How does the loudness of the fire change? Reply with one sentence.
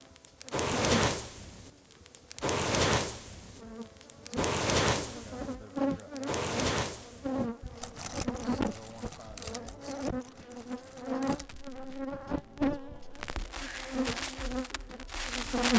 The volume of the fire goes down, then up.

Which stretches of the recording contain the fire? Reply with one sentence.
You can hear the fire from 0.2 to 15.7 s.